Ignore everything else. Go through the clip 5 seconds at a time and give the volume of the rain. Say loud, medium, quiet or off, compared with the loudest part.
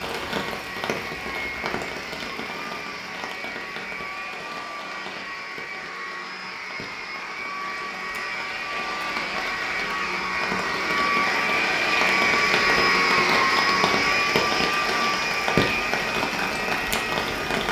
medium, quiet, loud, loud.